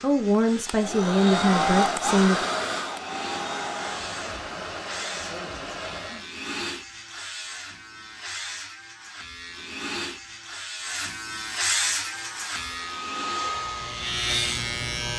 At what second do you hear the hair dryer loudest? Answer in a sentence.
The loudest moment of the hair dryer is at 2 seconds.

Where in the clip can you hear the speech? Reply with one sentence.
You can hear the speech from 0.0 to 2.5 s.